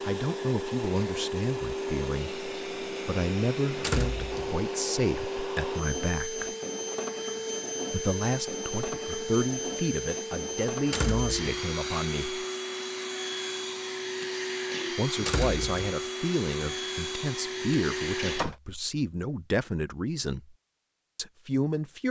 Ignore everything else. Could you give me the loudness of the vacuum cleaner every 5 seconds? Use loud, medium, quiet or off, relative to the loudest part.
loud, loud, loud, loud, off.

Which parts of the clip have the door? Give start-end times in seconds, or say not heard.
3.8-4.6, 10.8-11.6, 15.2-15.8.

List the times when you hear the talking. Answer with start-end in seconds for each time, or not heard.
0.0-6.5, 7.9-12.4, 14.9-20.6, 21.1-22.0.